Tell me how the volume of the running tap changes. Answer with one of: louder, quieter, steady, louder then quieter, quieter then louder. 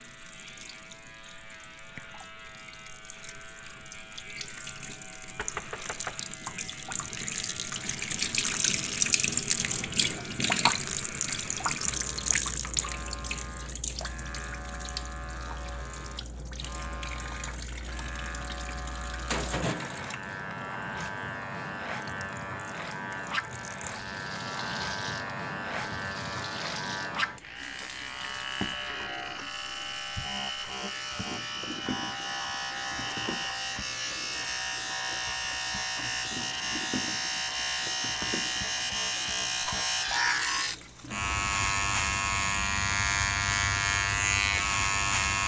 louder then quieter.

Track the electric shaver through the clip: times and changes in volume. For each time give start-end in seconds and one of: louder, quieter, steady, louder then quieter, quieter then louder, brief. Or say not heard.
0.0-45.4 louder.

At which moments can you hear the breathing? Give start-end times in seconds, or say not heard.
not heard.